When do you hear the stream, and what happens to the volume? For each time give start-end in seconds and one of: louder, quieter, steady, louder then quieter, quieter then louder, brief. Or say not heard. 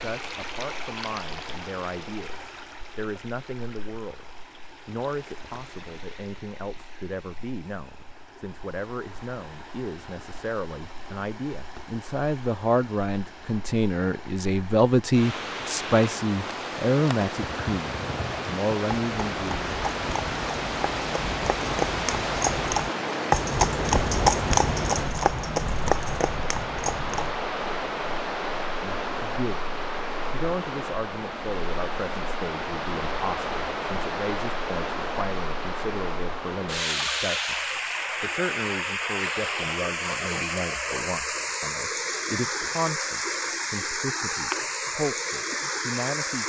0.0-46.4 louder.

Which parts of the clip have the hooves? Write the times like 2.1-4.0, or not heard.
17.4-27.3.